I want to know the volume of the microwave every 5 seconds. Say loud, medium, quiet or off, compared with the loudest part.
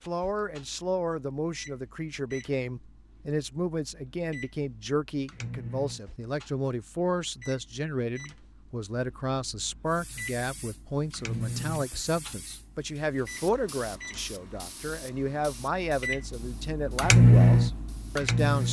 quiet, quiet, quiet, loud.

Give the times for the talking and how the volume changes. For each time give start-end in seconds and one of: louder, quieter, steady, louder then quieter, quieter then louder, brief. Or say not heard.
0.1-18.6 steady.